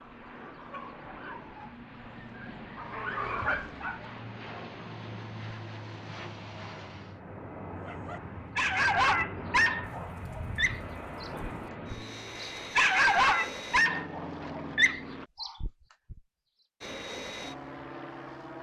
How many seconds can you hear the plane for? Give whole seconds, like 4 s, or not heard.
17 s.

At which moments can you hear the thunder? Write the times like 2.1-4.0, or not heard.
9.8-11.7.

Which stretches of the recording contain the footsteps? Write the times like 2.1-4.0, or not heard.
not heard.